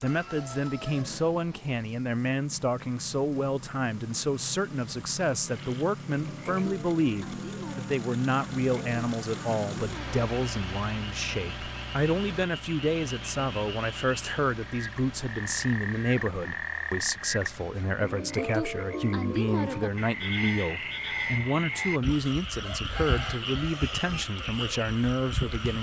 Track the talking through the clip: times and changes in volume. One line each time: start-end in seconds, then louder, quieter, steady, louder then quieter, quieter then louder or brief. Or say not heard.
0.0-25.7 steady.